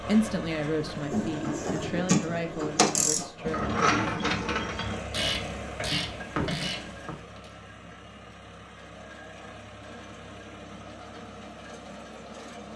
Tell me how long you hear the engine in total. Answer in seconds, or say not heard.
13 s.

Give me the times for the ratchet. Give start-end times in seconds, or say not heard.
1.1-7.5.